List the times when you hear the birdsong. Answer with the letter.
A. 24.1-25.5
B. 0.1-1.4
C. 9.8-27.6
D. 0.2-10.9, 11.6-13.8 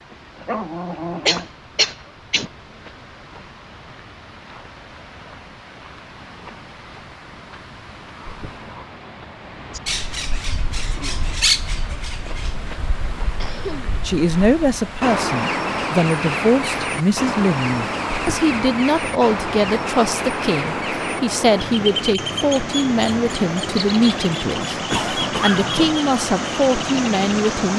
C.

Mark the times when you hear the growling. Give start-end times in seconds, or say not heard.
0.1-1.4.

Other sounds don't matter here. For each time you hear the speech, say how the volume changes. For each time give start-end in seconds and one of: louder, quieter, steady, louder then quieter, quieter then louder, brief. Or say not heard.
14.1-24.8 steady
25.4-27.7 brief.